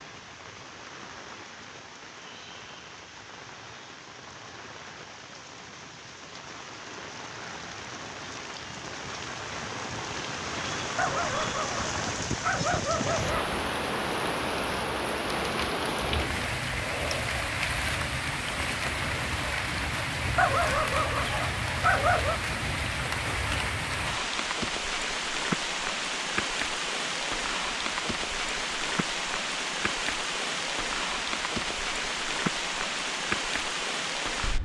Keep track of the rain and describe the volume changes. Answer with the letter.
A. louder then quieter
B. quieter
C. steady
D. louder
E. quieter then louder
D.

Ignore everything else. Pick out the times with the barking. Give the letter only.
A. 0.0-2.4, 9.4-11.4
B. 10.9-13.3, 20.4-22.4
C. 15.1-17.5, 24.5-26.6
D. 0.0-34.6
B.